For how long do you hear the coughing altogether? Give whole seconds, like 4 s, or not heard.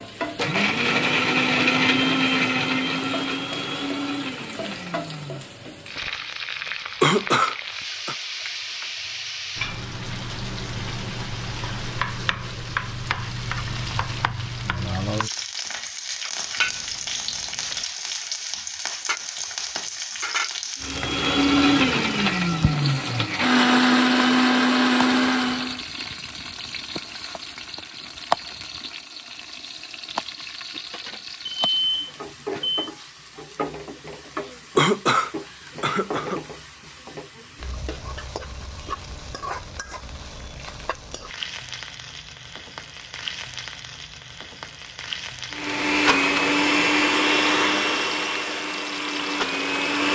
3 s.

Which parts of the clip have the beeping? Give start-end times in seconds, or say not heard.
16.6-17.8, 31.4-32.9.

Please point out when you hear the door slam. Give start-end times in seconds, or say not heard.
not heard.